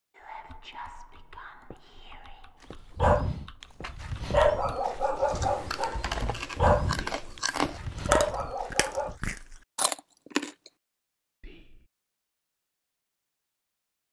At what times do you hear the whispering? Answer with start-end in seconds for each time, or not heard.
0.1-2.5, 7.0-7.4, 11.4-11.9.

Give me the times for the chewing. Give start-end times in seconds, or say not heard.
5.2-10.7.